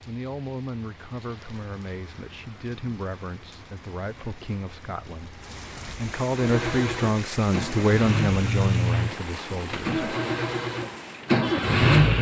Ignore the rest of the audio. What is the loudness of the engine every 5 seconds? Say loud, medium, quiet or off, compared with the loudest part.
off, medium, loud.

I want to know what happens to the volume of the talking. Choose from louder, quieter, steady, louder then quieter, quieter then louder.
louder.